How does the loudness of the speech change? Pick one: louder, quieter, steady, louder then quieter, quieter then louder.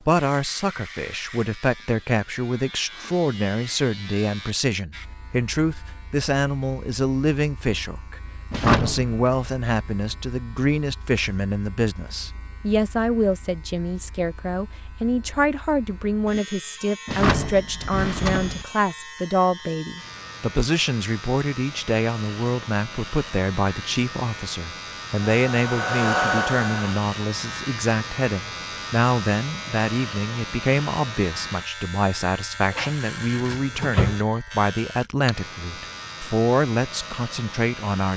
steady.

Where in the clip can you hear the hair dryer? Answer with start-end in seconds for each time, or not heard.
25.1-27.0.